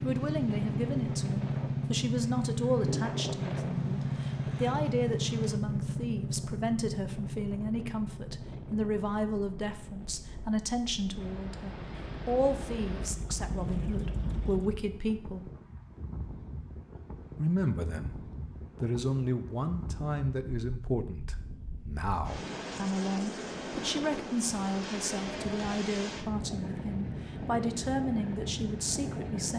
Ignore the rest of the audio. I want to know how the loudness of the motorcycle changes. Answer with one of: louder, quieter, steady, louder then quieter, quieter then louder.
quieter then louder.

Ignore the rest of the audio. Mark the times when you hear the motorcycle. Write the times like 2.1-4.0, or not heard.
0.0-14.8.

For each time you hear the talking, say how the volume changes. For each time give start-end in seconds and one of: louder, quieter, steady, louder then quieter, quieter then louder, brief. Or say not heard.
0.0-15.5 steady
17.4-18.2 brief
18.8-29.5 steady.